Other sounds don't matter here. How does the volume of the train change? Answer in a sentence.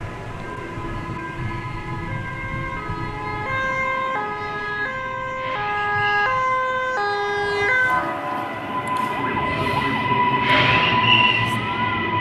The volume of the train goes up.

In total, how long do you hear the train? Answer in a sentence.
You can hear the train for 12 seconds altogether.